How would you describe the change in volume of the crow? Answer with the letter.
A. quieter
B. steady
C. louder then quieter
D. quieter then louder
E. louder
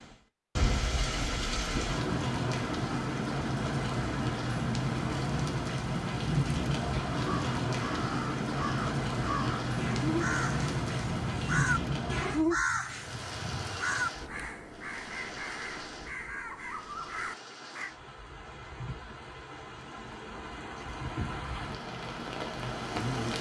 C.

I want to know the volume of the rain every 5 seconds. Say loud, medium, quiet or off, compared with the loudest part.
loud, loud, loud, quiet, medium.